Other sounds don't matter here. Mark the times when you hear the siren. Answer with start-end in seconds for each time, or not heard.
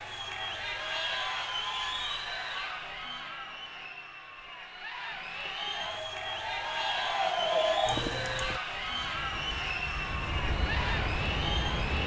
5.7-8.6.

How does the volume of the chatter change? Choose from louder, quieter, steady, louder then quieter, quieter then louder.
quieter then louder.